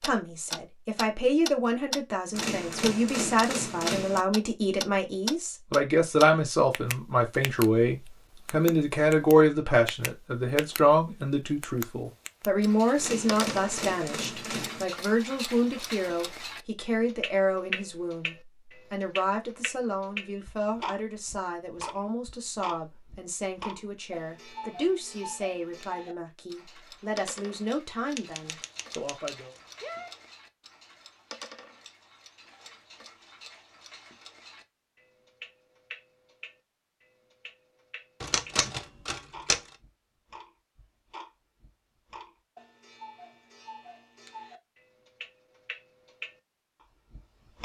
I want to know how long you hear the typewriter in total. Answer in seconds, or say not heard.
7 s.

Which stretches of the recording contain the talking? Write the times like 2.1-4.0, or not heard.
0.0-29.6.